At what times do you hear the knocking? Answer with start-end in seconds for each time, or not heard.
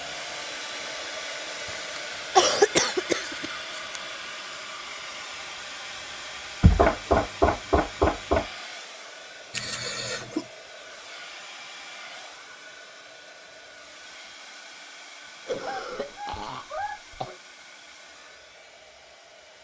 6.6-8.4.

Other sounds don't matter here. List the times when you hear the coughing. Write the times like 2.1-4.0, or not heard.
1.6-4.0, 9.5-10.4, 15.4-17.4.